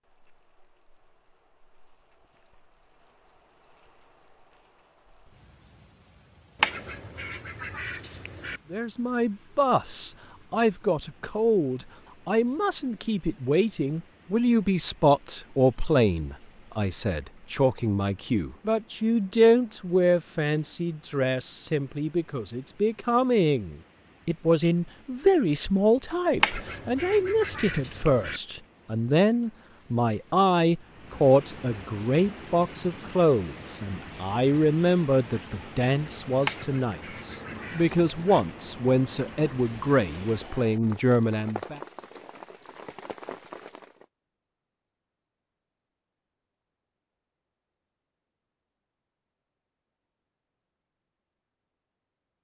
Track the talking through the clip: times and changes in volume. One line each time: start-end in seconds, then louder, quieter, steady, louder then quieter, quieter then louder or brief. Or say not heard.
8.7-41.8 steady.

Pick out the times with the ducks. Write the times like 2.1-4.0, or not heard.
6.6-8.6, 26.4-28.4, 36.4-38.4.